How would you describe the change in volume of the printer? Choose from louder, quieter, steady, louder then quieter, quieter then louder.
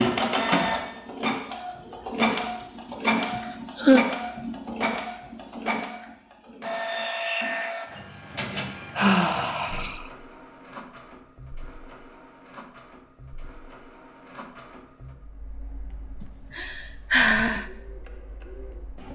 quieter.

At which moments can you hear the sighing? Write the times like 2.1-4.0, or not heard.
2.9-4.0, 8.9-10.1, 16.2-17.6.